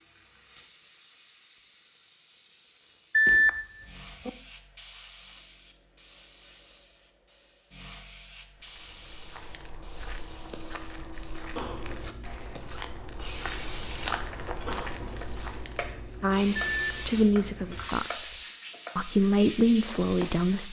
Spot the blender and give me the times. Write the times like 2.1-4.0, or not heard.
not heard.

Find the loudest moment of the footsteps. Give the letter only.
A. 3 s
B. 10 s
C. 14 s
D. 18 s
C.